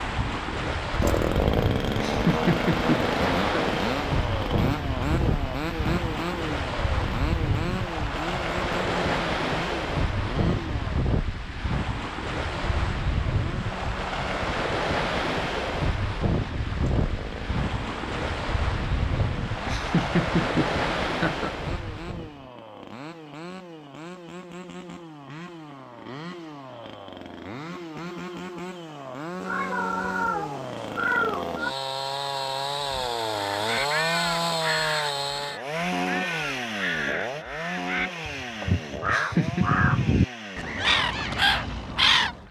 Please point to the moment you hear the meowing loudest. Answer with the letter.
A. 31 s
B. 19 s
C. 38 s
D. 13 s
A.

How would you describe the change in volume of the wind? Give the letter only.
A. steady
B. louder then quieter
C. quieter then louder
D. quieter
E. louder
A.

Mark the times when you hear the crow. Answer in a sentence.
The crow can be heard from 33.5 to 42.4 s.